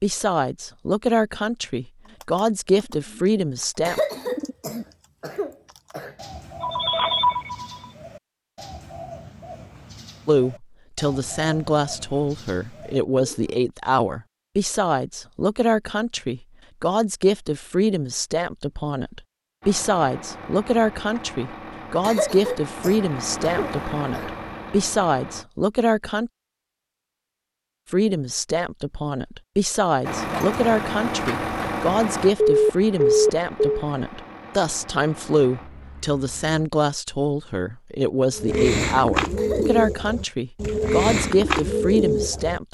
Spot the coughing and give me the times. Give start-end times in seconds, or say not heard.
3.9-6.2, 22.0-24.4, 39.4-39.8.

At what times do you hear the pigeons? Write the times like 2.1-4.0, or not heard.
2.0-13.7, 38.3-42.7.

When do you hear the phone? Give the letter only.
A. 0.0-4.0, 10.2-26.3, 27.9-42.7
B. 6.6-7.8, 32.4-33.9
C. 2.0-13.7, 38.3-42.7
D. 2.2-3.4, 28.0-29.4
B.